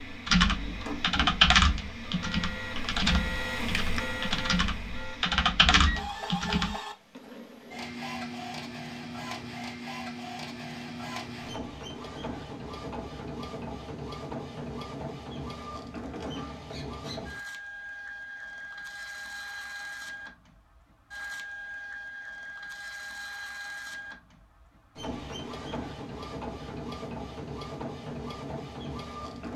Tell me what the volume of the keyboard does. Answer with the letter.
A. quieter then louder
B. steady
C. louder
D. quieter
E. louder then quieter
A.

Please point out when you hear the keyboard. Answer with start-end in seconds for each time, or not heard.
0.2-6.8.